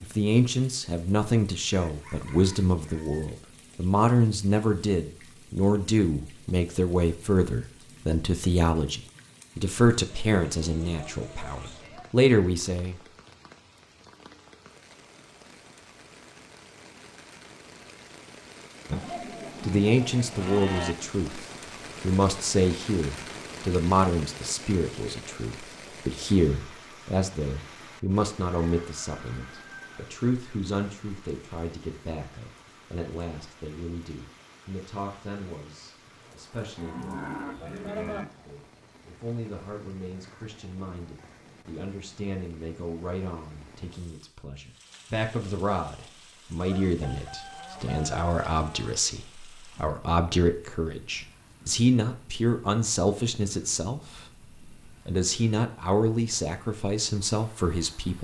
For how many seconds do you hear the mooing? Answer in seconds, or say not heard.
7 s.